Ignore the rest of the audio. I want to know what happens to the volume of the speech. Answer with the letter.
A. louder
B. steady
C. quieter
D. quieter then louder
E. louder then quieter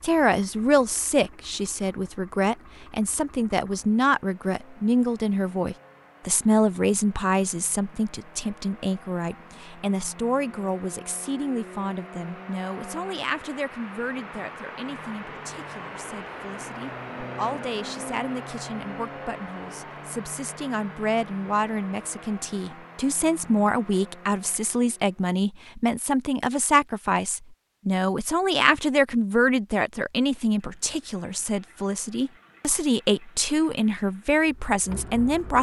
D.